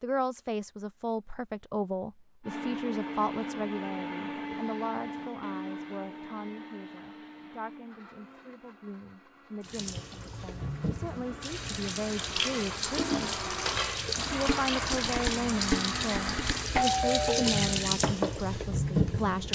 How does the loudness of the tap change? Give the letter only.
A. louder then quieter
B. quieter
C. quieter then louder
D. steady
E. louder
E.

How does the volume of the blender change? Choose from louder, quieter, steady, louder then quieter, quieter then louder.
quieter then louder.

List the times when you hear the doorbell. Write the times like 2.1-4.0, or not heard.
16.6-17.8.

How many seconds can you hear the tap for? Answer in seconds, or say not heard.
10 s.